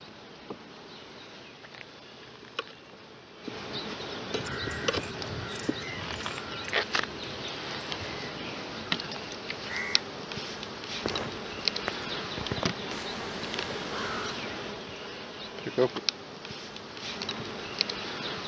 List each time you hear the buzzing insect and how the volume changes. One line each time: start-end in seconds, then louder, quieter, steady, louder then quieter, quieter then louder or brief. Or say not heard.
0.0-18.4 louder.